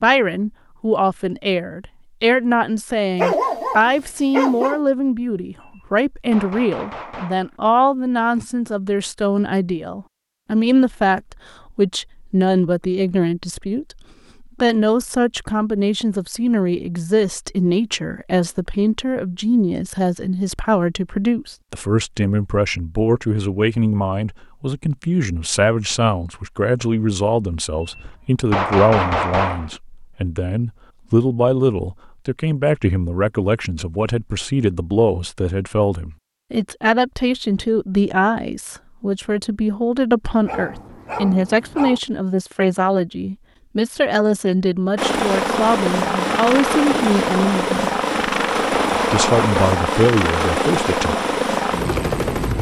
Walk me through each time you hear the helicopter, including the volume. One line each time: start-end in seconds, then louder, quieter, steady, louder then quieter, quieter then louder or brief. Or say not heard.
45.0-52.5 steady.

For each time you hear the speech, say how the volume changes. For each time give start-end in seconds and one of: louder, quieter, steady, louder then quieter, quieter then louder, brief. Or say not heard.
0.0-47.9 steady
49.1-51.1 brief.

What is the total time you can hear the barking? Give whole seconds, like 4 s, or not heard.
3 s.